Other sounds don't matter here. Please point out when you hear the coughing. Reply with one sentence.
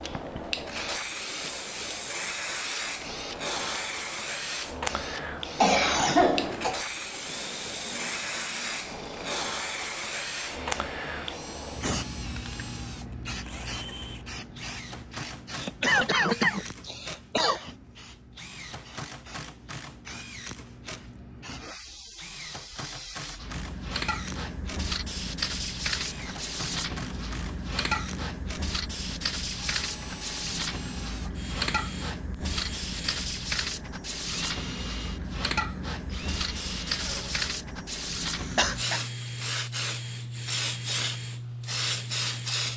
The coughing can be heard from 5.5 to 6.8 s, from 15.5 to 17.6 s and from 38.5 to 39.0 s.